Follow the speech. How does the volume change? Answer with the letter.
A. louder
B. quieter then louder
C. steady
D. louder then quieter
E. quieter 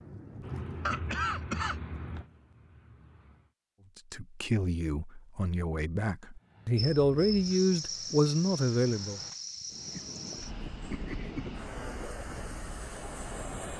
A.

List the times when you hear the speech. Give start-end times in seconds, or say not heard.
4.0-9.2.